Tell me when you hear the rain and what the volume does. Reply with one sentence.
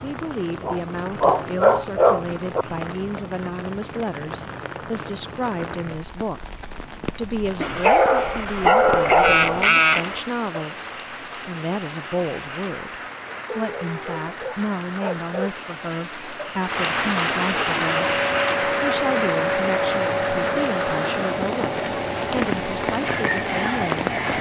The rain can be heard from 0.0 to 24.3 s, getting louder.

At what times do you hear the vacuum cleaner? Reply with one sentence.
You can hear the vacuum cleaner from 17.8 to 24.2 s.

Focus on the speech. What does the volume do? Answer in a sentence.
The loudness of the speech stays about the same.